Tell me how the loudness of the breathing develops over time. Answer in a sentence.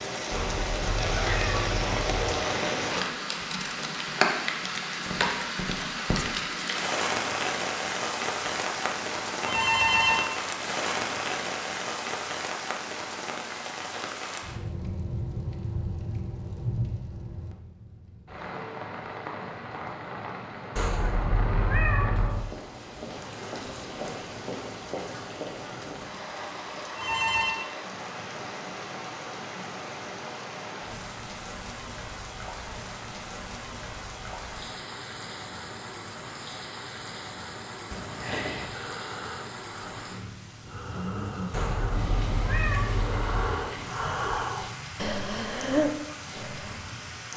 The loudness of the breathing goes up.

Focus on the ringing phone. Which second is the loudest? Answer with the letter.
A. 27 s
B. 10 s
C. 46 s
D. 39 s
B.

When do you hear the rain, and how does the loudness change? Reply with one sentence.
You can hear the rain from 0.0 to 47.3 s, getting quieter.